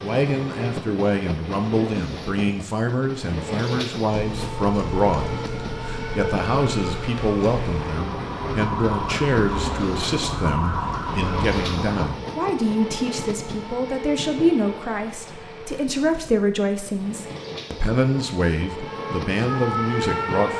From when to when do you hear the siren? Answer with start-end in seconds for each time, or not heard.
4.1-12.2, 18.8-20.5.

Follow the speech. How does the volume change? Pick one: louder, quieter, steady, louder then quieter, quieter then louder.
steady.